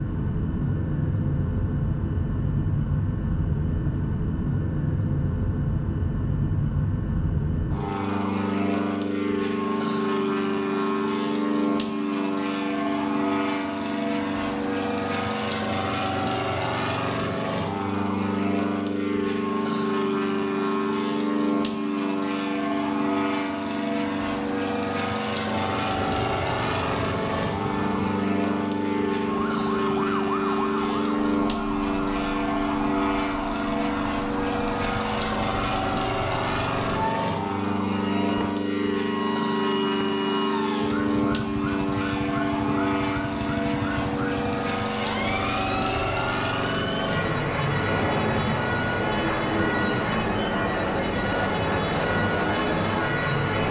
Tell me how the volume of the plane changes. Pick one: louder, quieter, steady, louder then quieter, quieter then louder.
steady.